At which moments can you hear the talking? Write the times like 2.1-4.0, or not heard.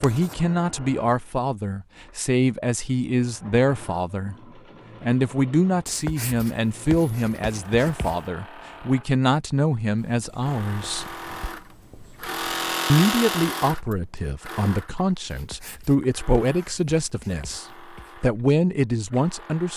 0.0-4.3, 5.0-11.2, 12.8-19.7.